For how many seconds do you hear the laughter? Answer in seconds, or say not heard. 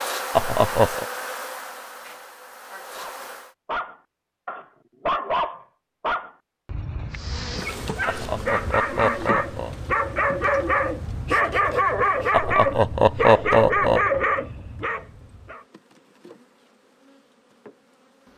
4 s.